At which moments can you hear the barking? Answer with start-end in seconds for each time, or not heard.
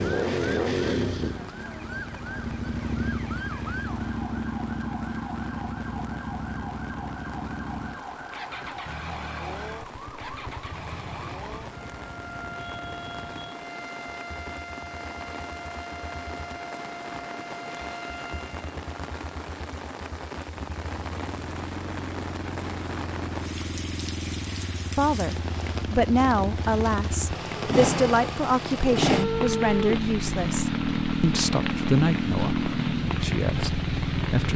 not heard.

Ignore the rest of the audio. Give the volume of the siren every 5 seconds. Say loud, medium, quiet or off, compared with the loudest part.
loud, loud, loud, loud, off, off, off.